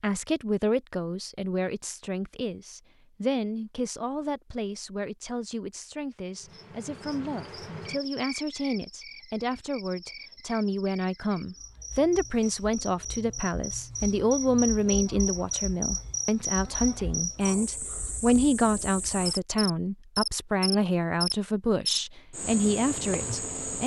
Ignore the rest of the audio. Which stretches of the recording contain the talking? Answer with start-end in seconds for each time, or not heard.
0.0-23.8.